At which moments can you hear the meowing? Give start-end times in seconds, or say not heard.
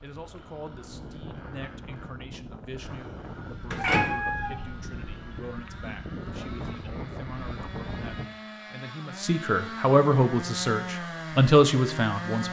3.6-5.2.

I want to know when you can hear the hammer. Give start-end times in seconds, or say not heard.
not heard.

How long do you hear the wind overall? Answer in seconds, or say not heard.
8 s.